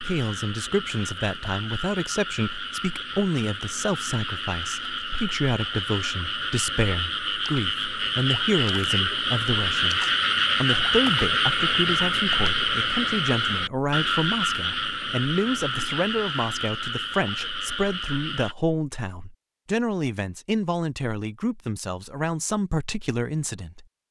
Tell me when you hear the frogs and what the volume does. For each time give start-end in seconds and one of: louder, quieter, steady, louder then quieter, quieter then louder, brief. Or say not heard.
0.0-18.6 louder then quieter.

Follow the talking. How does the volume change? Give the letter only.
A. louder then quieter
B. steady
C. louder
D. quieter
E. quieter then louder
B.